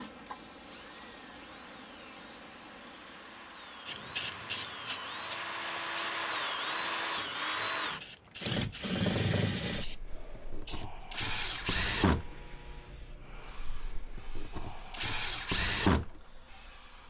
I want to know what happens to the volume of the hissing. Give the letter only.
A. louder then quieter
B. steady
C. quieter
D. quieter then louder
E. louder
C.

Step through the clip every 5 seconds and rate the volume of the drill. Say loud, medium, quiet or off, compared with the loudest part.
quiet, loud, medium, loud.